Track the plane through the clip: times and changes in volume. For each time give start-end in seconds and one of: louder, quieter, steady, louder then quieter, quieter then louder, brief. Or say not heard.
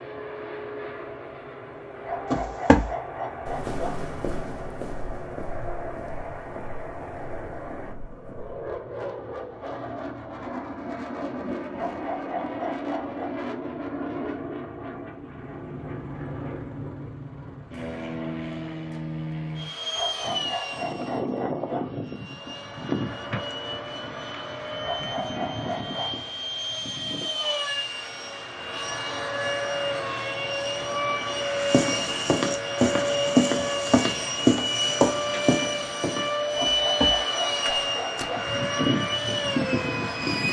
0.0-40.4 louder.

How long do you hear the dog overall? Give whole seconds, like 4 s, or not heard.
9 s.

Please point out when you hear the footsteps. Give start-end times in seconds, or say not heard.
2.3-8.8, 31.6-38.2.